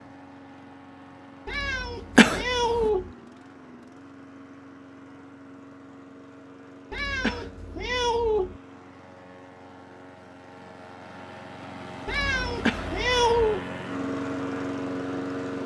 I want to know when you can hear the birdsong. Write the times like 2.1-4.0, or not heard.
not heard.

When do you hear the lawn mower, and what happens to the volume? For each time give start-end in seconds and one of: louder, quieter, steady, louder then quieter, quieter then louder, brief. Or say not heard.
0.0-15.6 louder.